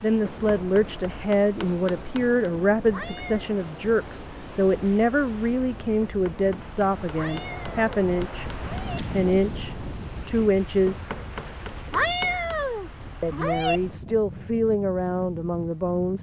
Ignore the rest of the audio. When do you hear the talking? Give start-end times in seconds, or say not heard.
0.0-11.1, 13.2-16.1.